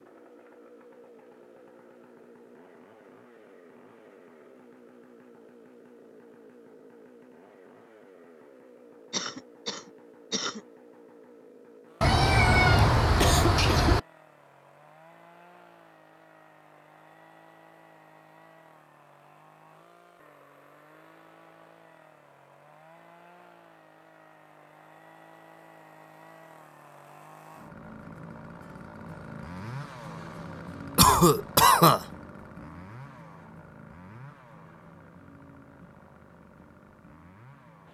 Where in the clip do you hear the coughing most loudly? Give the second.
32 s.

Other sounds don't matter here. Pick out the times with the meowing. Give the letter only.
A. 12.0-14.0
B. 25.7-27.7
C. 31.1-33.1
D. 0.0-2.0
A.